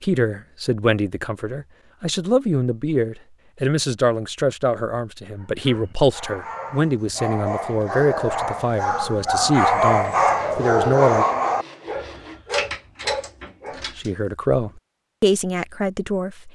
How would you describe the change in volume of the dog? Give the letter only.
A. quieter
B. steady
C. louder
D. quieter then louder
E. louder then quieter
E.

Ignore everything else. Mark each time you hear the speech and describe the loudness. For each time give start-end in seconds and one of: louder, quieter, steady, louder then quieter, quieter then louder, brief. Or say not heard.
0.0-11.2 steady
13.9-16.5 brief.